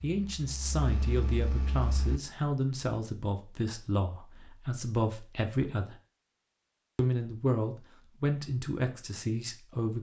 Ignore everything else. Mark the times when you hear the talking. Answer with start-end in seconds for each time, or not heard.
0.0-6.0, 7.0-9.9.